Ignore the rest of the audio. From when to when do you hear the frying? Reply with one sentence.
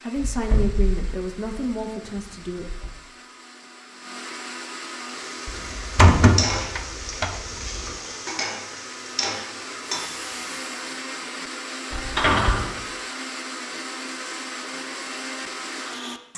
You can hear the frying from 5.0 to 10.9 s.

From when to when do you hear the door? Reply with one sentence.
The door can be heard from 0.1 to 2.9 s, from 5.5 to 7.8 s and from 11.9 to 12.8 s.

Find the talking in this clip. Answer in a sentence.
You can hear the talking from 0.0 to 2.6 s.